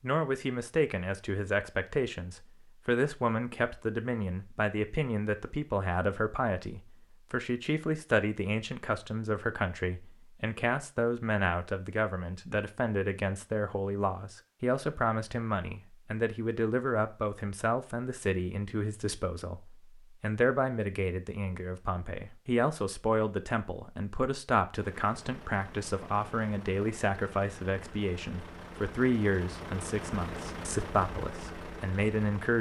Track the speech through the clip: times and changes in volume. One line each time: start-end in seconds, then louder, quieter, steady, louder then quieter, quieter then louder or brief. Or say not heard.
0.0-32.5 steady.